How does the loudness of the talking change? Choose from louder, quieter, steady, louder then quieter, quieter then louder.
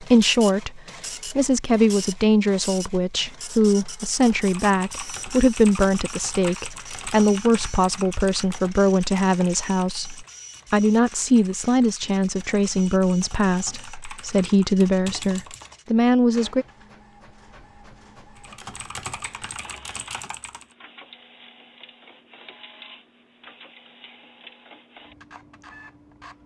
steady.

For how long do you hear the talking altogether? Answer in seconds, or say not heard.
17 s.